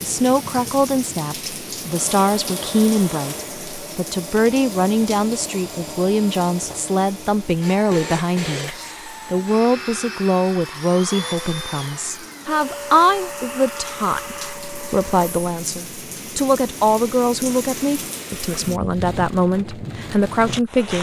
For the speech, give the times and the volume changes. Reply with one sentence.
You can hear the speech from 0.0 to 20.9 s, at a steady volume.